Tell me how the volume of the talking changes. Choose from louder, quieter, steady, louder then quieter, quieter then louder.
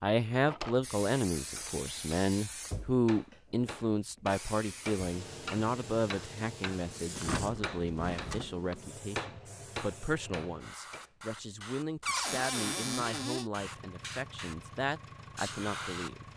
quieter.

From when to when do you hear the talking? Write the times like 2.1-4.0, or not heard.
0.0-16.2.